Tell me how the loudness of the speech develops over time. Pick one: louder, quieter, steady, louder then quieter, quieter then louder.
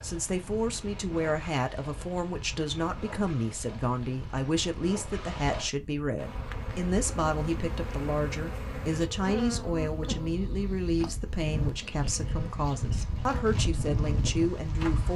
steady.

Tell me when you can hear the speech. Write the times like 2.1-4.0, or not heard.
0.0-15.1.